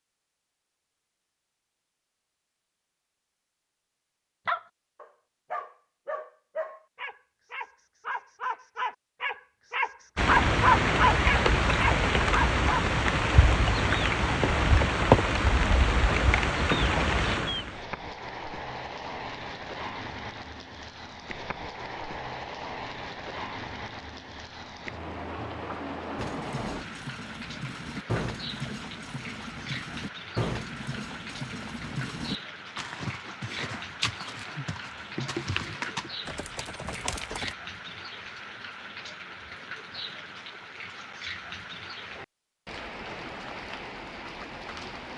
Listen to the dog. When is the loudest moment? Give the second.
11 s.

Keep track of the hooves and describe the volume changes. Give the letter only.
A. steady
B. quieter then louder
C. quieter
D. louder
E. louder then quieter
A.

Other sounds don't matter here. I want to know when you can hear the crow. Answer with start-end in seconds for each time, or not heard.
not heard.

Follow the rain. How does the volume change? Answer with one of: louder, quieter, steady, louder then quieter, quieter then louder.
quieter.